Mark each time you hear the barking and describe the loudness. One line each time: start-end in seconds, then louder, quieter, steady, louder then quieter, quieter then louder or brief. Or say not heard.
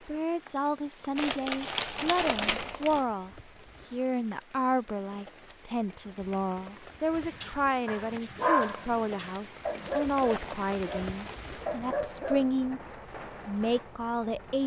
7.2-12.7 quieter then louder.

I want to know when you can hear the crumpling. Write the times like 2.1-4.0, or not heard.
1.1-3.0, 9.8-11.4.